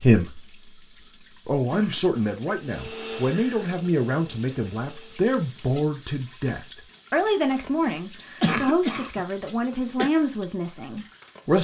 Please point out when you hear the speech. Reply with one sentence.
You can hear the speech from 0.0 to 0.6 s and from 1.4 to 11.5 s.